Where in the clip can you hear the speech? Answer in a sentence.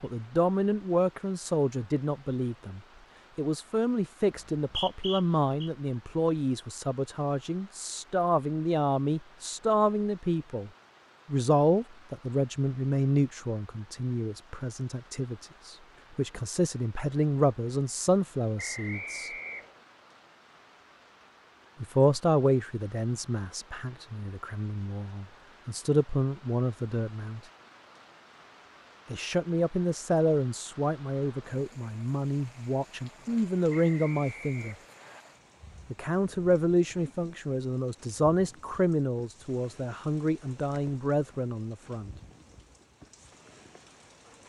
You can hear the speech from 0.0 to 19.3 s, from 21.8 to 27.4 s, from 29.1 to 34.8 s and from 35.9 to 42.1 s.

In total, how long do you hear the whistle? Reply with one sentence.
You can hear the whistle for 4 seconds altogether.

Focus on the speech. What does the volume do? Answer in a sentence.
The loudness of the speech stays about the same.